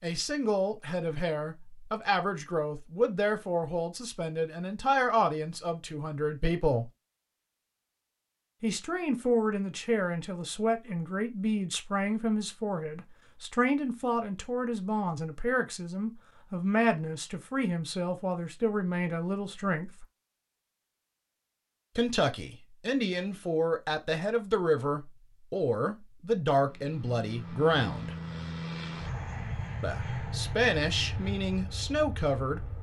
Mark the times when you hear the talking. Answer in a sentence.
You can hear the talking from 0.0 to 6.9 s, from 8.6 to 20.1 s, from 21.9 to 28.1 s and from 29.8 to 32.7 s.